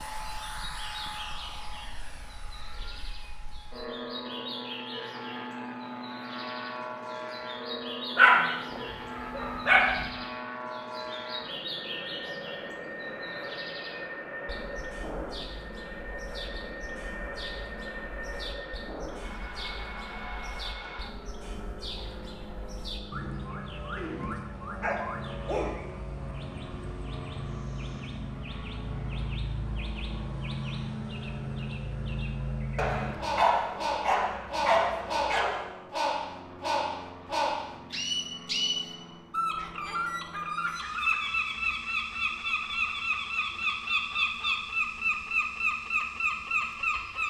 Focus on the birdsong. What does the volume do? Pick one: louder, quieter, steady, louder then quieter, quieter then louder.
louder.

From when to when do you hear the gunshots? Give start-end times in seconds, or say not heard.
not heard.